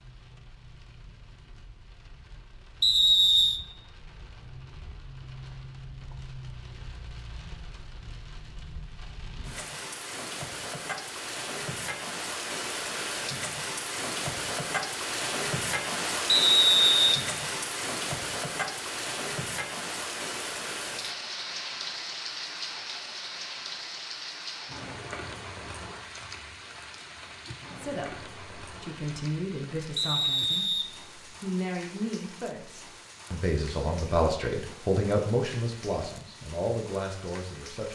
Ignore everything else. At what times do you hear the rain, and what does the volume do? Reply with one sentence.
The rain can be heard from 0.0 to 37.9 s, getting louder then quieter.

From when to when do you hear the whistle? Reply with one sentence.
You can hear the whistle from 2.8 to 3.6 s, from 16.2 to 17.2 s and from 29.9 to 31.4 s.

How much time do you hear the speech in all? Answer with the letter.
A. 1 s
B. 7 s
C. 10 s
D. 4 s
C.